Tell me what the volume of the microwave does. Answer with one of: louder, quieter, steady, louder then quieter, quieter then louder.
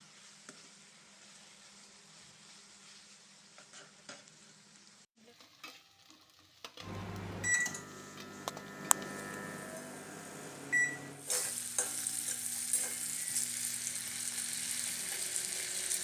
quieter.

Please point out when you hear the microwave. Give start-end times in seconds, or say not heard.
6.8-16.0.